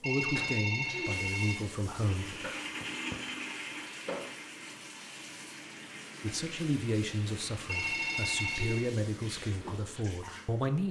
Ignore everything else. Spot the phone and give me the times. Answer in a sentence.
The phone can be heard from 0.0 to 1.6 s and from 7.7 to 8.9 s.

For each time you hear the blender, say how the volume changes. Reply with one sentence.
The blender can be heard from 1.9 to 8.6 s, getting quieter.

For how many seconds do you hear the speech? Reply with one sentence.
The speech can be heard for 7 seconds in total.